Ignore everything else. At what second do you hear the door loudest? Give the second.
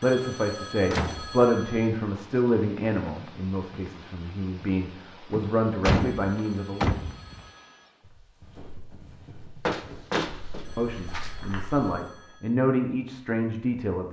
6 s.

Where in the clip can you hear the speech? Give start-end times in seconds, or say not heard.
0.0-7.0, 10.8-14.0.